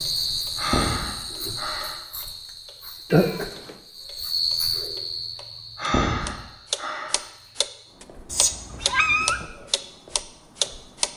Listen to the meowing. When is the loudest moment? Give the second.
9 s.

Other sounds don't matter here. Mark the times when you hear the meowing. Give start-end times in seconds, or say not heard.
3.1-3.9, 8.3-9.5.